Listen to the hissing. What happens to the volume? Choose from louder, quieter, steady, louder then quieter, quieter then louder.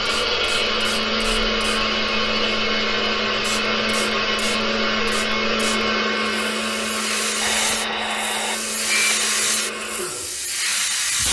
louder.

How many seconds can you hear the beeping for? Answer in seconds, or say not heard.
2 s.